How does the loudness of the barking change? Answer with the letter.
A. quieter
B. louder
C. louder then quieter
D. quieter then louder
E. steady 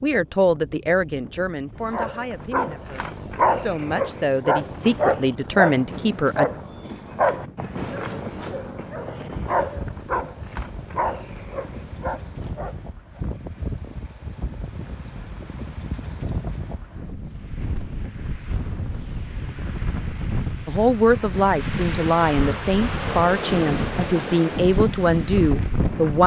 A.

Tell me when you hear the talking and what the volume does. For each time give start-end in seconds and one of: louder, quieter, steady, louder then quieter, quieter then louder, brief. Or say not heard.
0.0-6.5 quieter then louder
20.6-26.2 steady.